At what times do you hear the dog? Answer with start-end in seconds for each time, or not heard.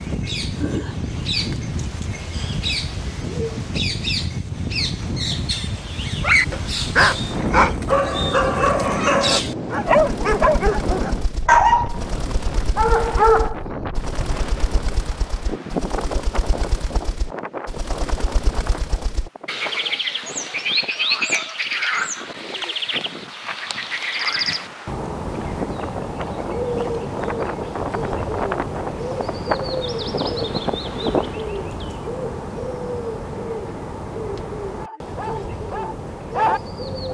6.2-13.7, 34.8-37.1.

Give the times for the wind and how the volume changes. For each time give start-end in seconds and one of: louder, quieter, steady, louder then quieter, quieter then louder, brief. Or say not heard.
0.0-31.4 quieter then louder.